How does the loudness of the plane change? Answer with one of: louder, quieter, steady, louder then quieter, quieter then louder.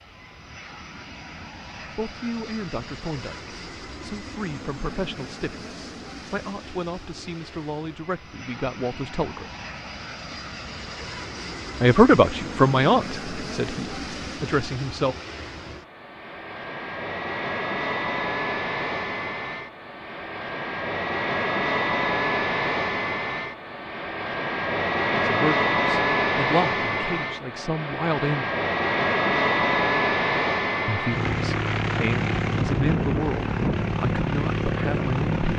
louder.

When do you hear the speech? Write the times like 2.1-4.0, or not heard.
1.9-9.4, 11.8-15.2, 25.2-28.5, 30.9-35.5.